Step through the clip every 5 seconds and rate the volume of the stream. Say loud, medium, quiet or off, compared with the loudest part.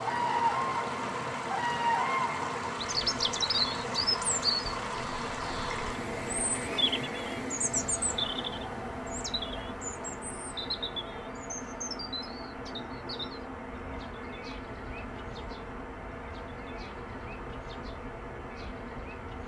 loud, loud, medium, medium.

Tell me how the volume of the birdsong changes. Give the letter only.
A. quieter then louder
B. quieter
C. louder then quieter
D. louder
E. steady
B.